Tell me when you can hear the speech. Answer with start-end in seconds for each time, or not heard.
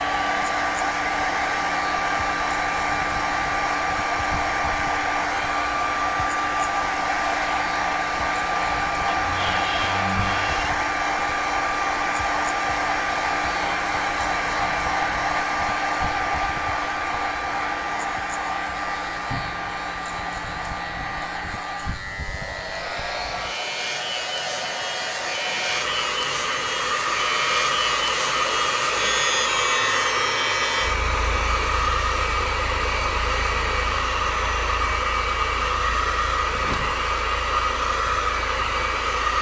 not heard.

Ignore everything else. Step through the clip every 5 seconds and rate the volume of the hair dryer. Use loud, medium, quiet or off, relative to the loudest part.
loud, loud, loud, loud, medium, loud, loud, loud.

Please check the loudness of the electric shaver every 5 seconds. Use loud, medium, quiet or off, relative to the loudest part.
medium, medium, medium, medium, medium, loud, medium, quiet.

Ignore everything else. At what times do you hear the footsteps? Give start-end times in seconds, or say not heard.
not heard.